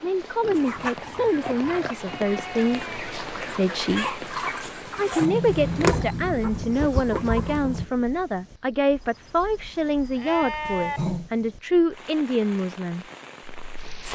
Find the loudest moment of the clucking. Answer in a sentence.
The loudest moment of the clucking is at 6 seconds.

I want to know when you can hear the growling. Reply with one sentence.
You can hear the growling from 0.4 to 3.0 s, from 4.8 to 6.2 s and from 10.7 to 11.3 s.